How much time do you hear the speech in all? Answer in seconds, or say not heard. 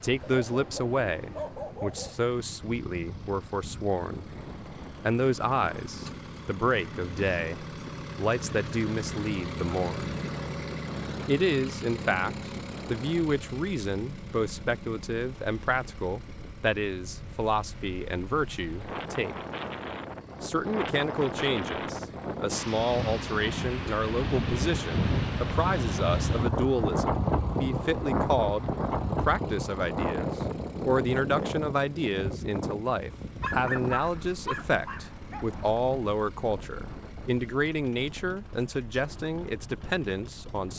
38 s.